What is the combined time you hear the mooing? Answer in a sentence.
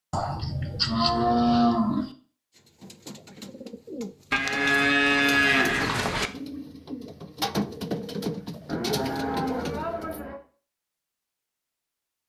The mooing can be heard for 6 seconds in total.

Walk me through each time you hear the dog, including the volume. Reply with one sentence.
You can't hear the dog here.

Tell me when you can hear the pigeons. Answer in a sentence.
The pigeons can be heard from 2.5 to 10.2 s.